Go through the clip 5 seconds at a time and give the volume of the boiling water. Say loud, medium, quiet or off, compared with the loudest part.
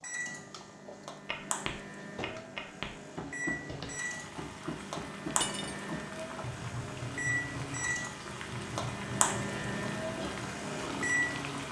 medium, loud, loud.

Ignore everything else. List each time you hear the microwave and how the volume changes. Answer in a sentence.
The microwave can be heard from 0.0 to 11.6 s, getting louder.